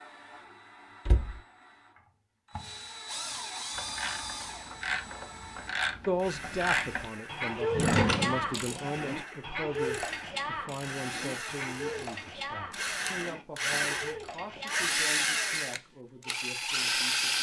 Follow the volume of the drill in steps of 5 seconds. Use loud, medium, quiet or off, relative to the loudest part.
quiet, quiet, medium, loud.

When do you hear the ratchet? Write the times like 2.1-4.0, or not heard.
3.8-15.1.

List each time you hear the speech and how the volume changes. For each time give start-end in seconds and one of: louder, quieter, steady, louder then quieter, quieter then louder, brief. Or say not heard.
6.0-17.3 quieter.